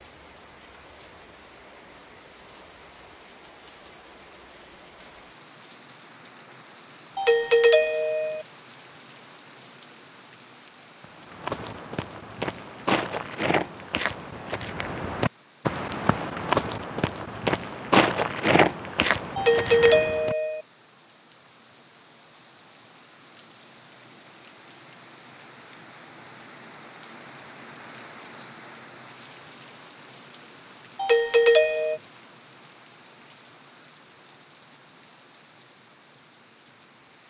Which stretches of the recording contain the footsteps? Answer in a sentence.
You can hear the footsteps from 11.0 to 20.4 s.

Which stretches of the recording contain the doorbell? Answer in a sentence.
The doorbell can be heard from 7.2 to 8.4 s, from 19.4 to 20.6 s and from 30.9 to 32.0 s.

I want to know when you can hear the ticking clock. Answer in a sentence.
You can't hear the ticking clock here.